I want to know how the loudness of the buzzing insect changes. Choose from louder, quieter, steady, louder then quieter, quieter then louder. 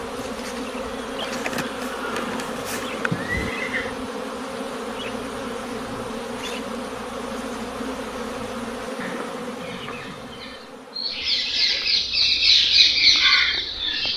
quieter.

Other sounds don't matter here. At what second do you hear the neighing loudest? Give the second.
3 s.